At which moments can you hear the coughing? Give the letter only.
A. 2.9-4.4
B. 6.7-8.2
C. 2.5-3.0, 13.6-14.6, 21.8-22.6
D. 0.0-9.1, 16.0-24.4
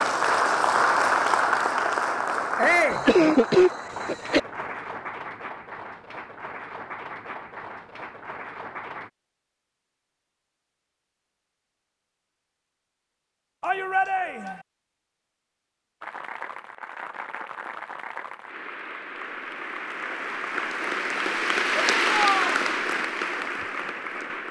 A.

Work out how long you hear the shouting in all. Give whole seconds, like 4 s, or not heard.
2 s.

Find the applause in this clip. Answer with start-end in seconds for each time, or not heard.
0.0-9.1, 16.0-24.4.